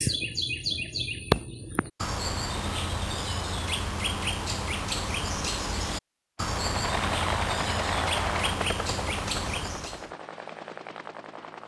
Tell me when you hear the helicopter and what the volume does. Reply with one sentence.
The helicopter can be heard from 6.5 to 11.6 s, getting quieter.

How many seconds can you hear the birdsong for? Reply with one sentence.
The birdsong can be heard for 10 seconds in total.